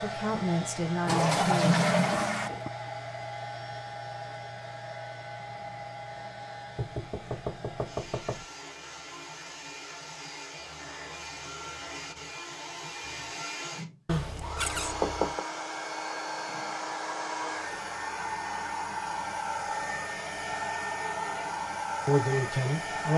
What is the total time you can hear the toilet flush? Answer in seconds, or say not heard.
2 s.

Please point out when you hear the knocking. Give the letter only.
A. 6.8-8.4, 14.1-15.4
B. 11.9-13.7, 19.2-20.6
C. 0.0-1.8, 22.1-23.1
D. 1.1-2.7
A.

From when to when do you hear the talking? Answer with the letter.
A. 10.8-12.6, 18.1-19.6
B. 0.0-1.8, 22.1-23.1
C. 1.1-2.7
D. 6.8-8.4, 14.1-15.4
B.